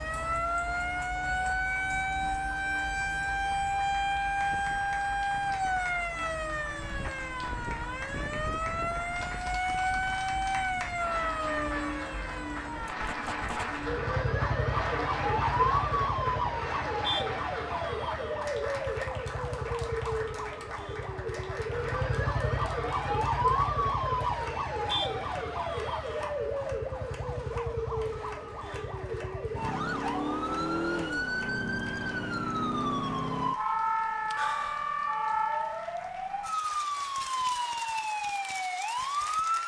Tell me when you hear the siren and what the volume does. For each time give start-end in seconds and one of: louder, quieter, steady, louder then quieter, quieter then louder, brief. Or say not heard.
0.0-39.6 steady.